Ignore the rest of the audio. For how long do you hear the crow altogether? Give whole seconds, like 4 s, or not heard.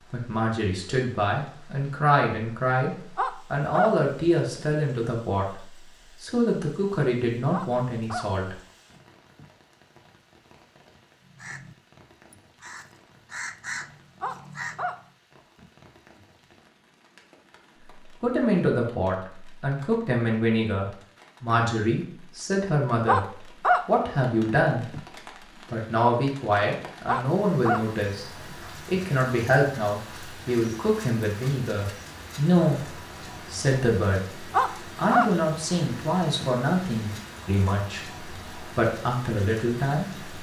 4 s.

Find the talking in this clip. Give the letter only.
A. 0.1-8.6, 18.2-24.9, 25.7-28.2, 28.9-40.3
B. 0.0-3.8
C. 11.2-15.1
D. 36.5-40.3
A.